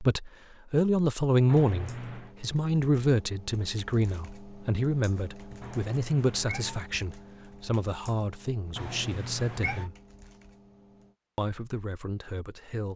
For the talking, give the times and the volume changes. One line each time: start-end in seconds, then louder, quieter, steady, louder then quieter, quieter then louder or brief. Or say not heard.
0.0-9.9 quieter
11.3-12.9 brief.